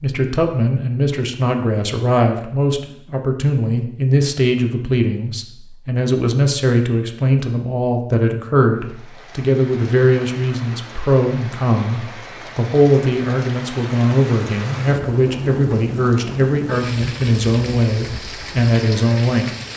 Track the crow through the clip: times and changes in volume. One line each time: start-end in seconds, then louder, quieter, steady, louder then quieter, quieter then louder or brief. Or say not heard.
not heard.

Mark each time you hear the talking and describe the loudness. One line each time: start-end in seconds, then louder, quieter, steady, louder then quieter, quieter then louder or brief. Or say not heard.
0.0-19.5 steady.